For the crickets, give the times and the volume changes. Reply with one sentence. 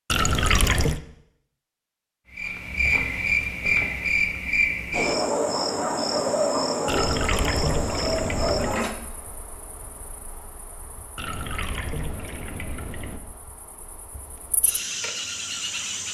The crickets can be heard from 2.3 to 16.1 s, getting quieter then louder.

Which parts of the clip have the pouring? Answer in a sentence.
You can hear the pouring from 0.1 to 1.0 s, from 6.8 to 8.8 s and from 11.2 to 13.2 s.